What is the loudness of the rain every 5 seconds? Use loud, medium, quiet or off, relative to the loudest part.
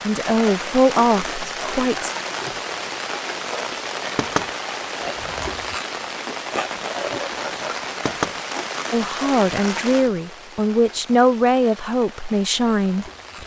loud, loud, quiet.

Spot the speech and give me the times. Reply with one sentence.
You can hear the speech from 0.0 to 2.1 s and from 8.9 to 13.4 s.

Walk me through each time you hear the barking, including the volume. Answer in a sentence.
The barking can't be heard in this clip.